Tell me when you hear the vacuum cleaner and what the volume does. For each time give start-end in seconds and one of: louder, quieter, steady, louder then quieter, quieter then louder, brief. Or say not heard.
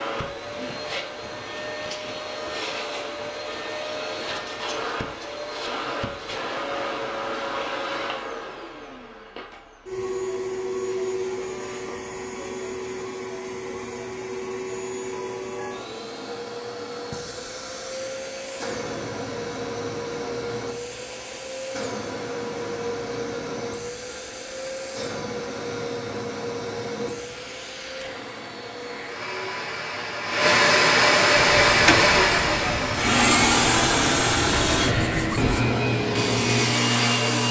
0.0-37.4 louder.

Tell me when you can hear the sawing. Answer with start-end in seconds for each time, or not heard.
31.4-37.4.